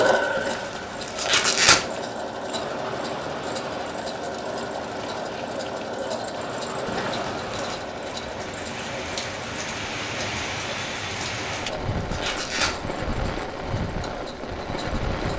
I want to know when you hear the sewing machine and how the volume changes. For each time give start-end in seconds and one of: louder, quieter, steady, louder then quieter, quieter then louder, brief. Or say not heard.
0.0-15.3 quieter.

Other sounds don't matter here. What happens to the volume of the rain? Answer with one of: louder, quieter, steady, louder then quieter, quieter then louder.
louder.